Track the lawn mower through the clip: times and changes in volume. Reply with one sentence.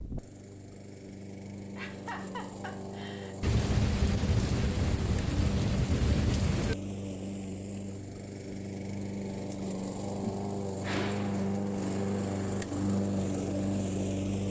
The lawn mower can be heard from 0.0 to 14.4 s, getting louder.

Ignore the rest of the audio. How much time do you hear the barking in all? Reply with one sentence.
The barking can't be heard in this clip.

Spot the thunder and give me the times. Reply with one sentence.
You can hear the thunder from 3.4 to 6.8 s.